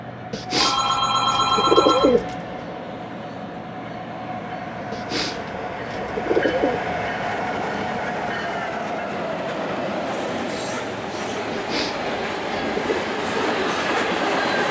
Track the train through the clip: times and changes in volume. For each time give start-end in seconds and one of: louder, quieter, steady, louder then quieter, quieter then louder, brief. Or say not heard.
0.0-14.6 louder.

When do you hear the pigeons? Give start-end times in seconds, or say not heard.
0.3-2.4, 4.9-6.8, 11.5-13.1.